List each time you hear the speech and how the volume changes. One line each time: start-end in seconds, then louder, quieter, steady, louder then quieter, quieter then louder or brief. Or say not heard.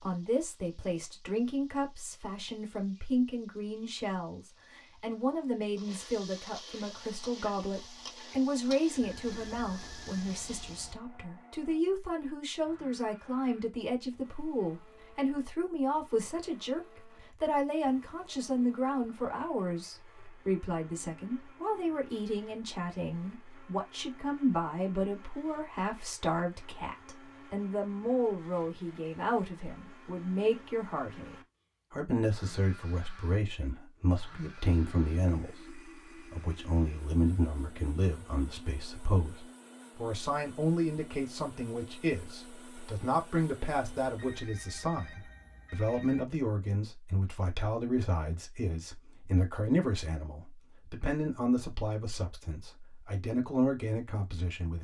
0.0-54.7 steady.